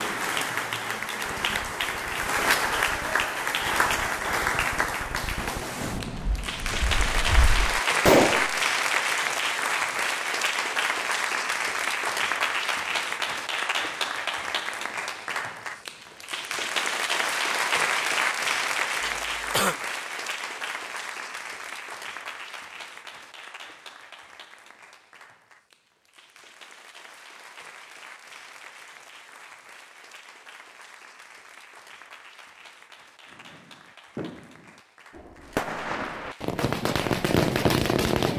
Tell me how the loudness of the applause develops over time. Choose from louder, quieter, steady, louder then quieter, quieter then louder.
quieter.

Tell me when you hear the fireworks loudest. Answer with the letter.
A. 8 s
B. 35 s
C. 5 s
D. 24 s
A.